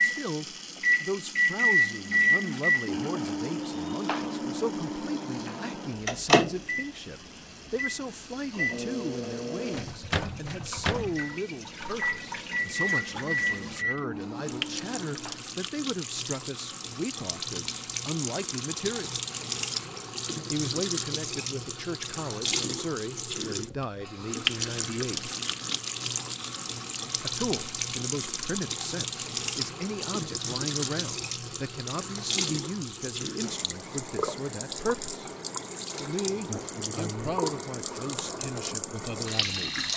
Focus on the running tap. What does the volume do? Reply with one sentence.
The loudness of the running tap goes up.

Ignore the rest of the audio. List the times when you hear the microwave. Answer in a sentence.
You can hear the microwave from 0.0 to 15.4 s.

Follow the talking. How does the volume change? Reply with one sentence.
The volume of the talking stays about the same.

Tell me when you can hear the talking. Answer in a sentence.
The talking can be heard from 0.0 to 19.1 s, from 20.5 to 25.3 s, from 27.1 to 35.1 s and from 36.0 to 39.9 s.